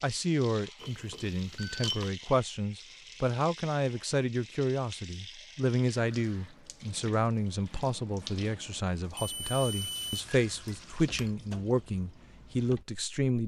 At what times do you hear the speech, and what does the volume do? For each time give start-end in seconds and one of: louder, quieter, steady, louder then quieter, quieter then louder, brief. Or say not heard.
0.0-13.4 steady.